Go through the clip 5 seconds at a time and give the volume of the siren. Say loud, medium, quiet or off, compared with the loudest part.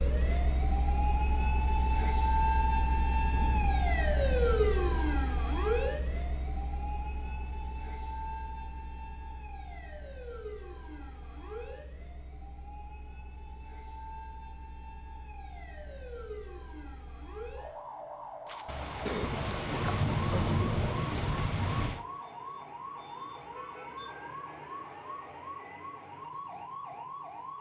loud, medium, quiet, quiet, medium, medium.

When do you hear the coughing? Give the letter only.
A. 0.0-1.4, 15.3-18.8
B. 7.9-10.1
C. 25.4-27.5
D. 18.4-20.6
D.